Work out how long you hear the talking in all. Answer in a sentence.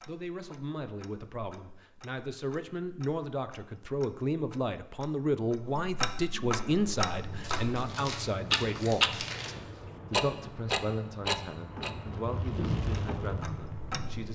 You can hear the talking for 14 seconds altogether.